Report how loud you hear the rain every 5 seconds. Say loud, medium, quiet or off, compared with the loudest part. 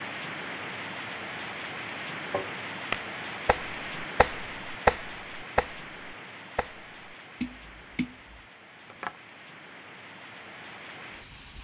loud, medium, medium.